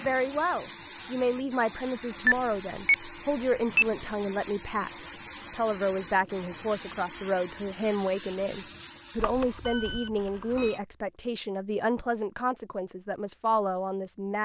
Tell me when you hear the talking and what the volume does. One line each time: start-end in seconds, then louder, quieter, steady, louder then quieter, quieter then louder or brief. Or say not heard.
0.0-14.4 steady.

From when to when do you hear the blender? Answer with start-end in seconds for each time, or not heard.
not heard.